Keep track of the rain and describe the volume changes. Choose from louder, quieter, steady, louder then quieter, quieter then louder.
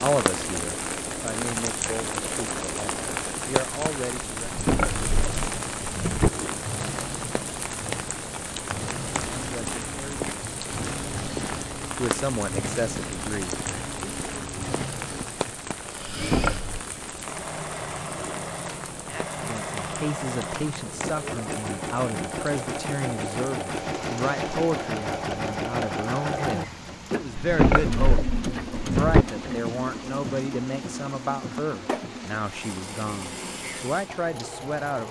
quieter.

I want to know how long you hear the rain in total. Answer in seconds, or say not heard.
35 s.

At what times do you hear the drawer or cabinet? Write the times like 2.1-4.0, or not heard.
4.4-6.3, 16.1-16.8, 27.4-29.2.